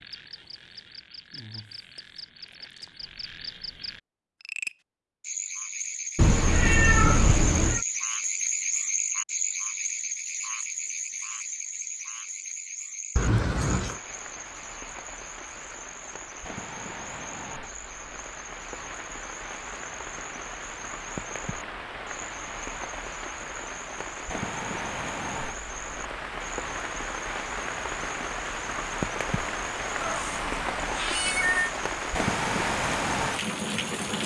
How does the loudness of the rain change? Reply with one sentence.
The loudness of the rain goes up.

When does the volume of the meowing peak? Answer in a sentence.
The loudest moment of the meowing is at 7 seconds.